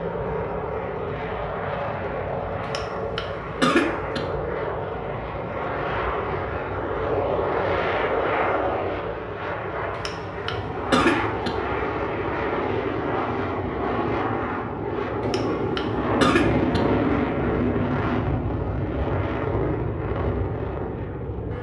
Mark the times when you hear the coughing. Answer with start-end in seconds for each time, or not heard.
2.7-4.2, 10.1-11.5, 15.2-16.8.